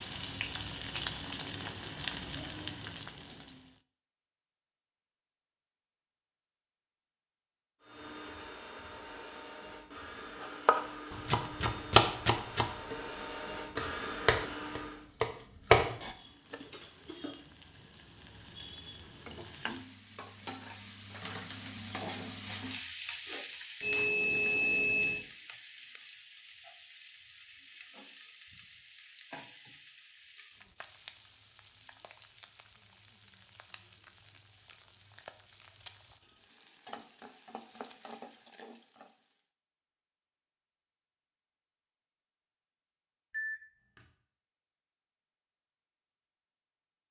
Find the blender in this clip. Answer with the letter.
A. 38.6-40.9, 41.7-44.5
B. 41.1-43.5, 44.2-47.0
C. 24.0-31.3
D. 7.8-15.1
D.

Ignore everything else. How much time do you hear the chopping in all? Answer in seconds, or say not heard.
5 s.